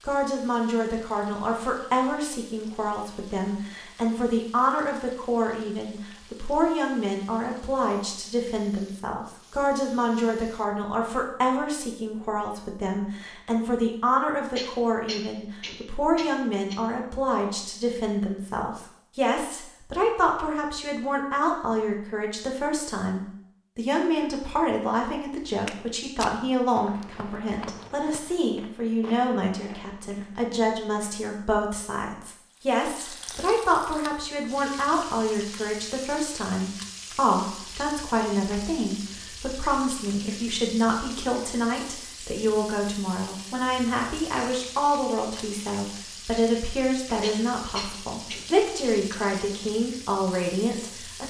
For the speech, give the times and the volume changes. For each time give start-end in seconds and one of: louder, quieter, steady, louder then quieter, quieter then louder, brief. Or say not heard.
0.1-51.2 steady.